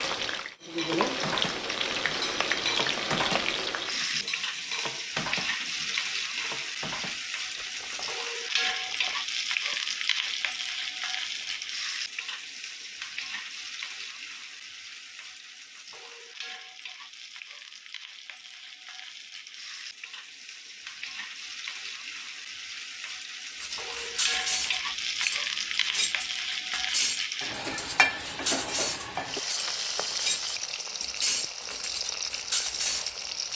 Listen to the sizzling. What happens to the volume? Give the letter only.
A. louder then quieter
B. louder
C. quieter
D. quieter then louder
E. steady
D.